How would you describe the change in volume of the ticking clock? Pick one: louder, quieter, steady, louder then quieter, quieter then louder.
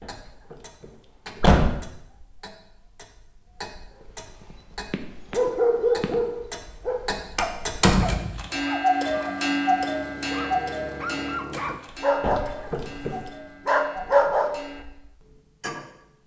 louder then quieter.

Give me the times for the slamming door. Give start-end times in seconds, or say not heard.
0.0-1.9, 7.3-8.4, 12.2-13.3.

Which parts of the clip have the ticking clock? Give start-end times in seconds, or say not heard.
0.0-16.2.